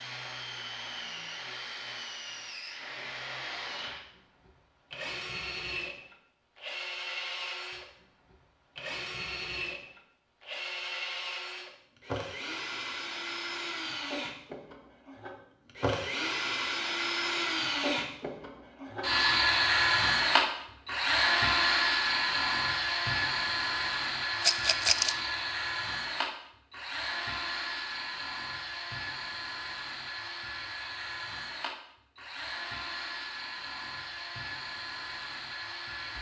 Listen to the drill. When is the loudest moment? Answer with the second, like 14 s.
20 s.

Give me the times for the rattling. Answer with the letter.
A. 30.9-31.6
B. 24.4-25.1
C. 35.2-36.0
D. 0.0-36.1
B.